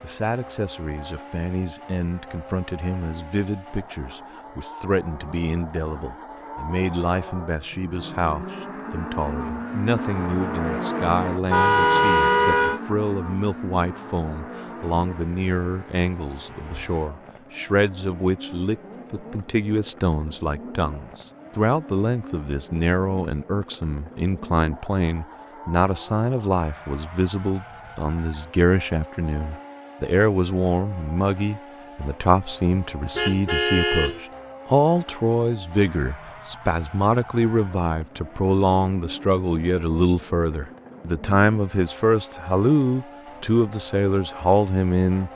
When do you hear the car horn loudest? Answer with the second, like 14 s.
12 s.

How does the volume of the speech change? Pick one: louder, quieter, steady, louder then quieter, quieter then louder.
louder.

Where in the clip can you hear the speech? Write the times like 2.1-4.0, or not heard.
0.0-45.3.